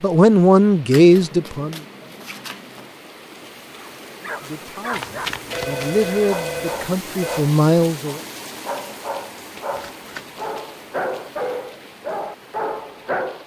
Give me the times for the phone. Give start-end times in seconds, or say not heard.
5.5-7.5.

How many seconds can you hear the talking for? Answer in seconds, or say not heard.
6 s.